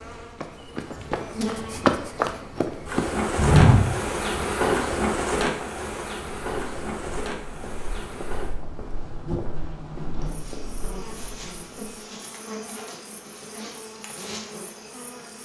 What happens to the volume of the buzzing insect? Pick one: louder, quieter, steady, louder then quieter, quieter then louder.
louder then quieter.